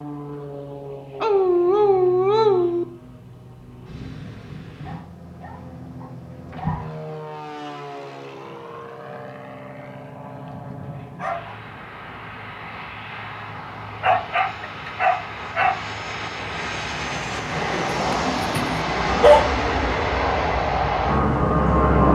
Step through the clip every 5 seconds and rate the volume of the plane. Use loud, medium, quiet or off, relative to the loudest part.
quiet, quiet, quiet, medium, loud.